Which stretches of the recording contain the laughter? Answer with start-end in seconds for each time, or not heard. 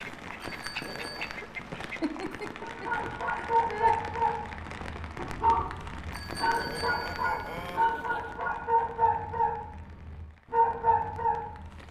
2.0-4.0, 7.8-8.3.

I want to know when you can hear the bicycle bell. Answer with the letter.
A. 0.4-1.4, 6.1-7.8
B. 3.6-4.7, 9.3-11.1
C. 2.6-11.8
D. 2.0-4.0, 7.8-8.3
A.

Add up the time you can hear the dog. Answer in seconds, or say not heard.
9 s.